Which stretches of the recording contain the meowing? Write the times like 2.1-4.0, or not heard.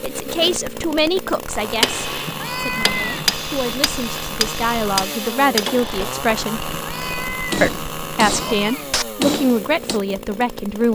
2.2-3.4, 6.7-9.1.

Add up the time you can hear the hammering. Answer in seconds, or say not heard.
8 s.